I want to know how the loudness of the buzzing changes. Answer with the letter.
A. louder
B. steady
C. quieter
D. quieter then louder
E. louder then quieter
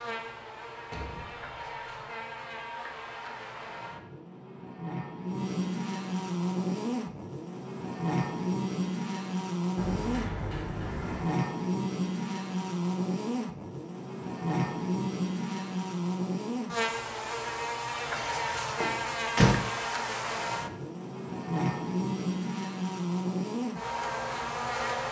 A.